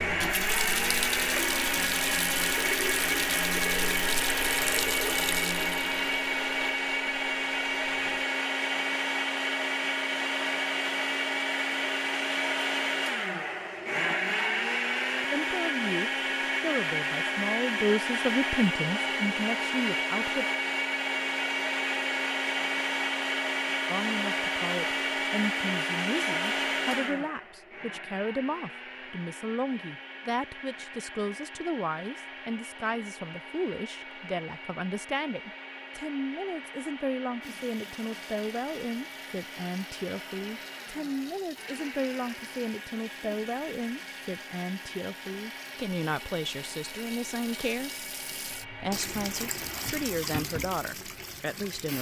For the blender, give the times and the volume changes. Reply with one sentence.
The blender can be heard from 0.0 to 50.2 s, getting quieter.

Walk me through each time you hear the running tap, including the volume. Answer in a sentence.
You can hear the running tap from 0.0 to 8.3 s, getting quieter; and from 37.4 to 51.9 s, getting louder.